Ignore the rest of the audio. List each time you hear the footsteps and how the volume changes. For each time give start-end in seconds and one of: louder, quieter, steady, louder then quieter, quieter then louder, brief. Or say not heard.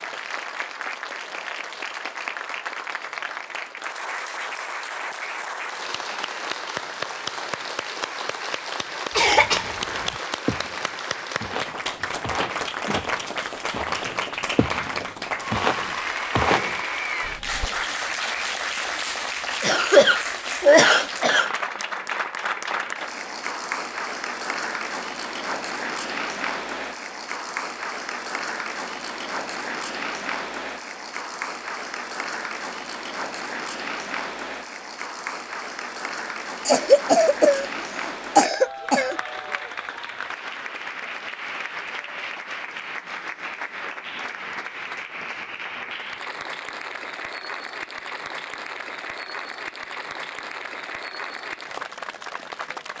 9.6-17.7 louder.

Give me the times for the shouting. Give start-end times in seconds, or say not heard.
not heard.